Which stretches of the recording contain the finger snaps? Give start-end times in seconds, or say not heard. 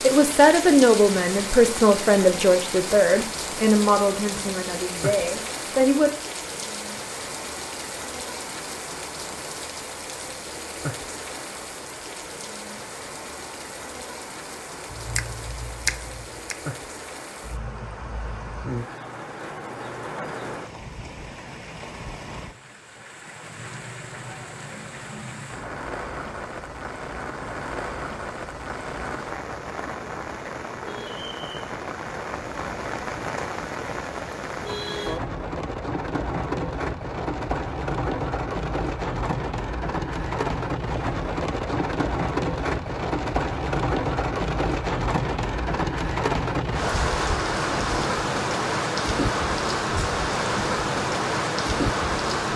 14.8-16.6.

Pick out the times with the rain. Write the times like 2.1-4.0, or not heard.
0.0-52.5.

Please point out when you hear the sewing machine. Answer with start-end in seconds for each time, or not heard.
not heard.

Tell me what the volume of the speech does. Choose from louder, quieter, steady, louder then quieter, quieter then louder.
quieter.